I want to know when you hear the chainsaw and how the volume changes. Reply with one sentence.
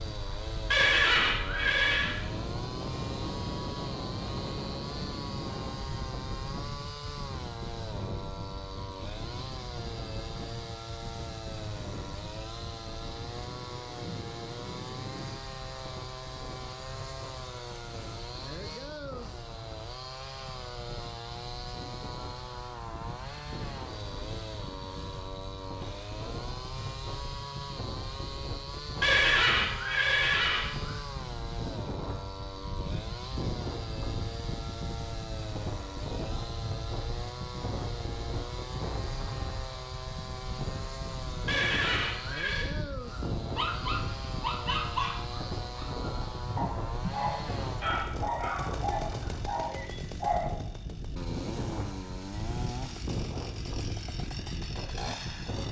The chainsaw can be heard from 0.0 to 55.6 s, at a steady volume.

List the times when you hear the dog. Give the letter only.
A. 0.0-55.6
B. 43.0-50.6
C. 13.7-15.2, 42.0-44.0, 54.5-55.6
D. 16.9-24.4
B.